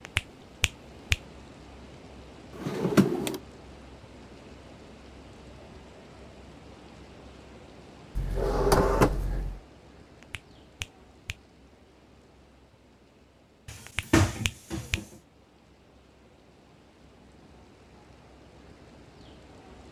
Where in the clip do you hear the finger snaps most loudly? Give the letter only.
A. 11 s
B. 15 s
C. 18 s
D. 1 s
D.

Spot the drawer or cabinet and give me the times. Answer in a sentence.
You can hear the drawer or cabinet from 2.5 to 3.4 s, from 8.2 to 9.6 s and from 13.7 to 15.1 s.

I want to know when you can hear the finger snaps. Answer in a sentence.
The finger snaps can be heard from 0.1 to 1.2 s, from 10.2 to 11.3 s and from 13.8 to 15.0 s.